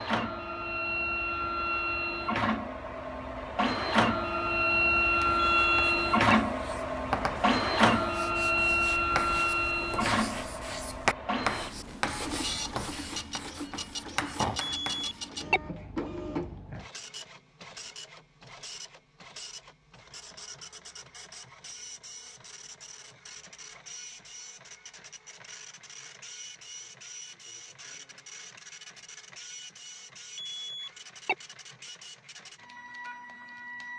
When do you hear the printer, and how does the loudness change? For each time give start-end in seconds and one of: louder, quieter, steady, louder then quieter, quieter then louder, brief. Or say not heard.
0.0-33.9 quieter.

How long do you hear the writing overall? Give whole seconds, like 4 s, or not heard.
10 s.